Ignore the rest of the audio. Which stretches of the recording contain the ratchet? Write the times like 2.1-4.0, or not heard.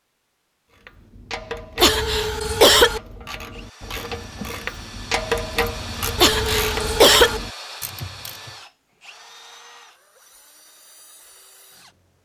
0.7-8.6.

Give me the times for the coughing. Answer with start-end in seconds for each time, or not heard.
1.8-3.0, 6.2-7.4.